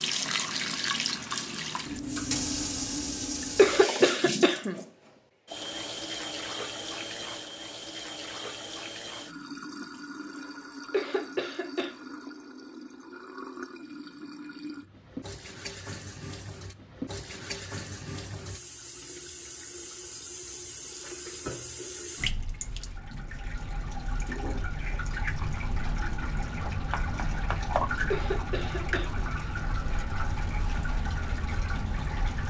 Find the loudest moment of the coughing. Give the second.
4 s.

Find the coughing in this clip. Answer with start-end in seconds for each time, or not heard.
3.5-4.8, 10.9-11.9, 28.1-29.2.